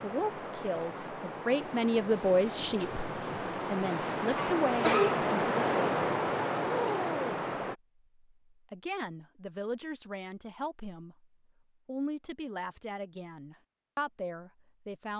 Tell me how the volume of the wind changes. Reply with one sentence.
The volume of the wind goes up.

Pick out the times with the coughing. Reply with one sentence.
The coughing can be heard from 4.3 to 5.2 s.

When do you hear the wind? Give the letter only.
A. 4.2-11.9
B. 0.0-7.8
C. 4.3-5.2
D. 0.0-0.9
B.